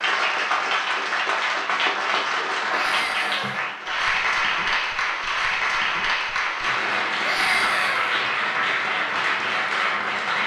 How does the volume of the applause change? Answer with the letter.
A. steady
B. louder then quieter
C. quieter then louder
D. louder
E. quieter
A.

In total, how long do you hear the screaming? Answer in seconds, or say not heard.
2 s.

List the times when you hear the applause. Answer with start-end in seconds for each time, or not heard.
0.0-10.4.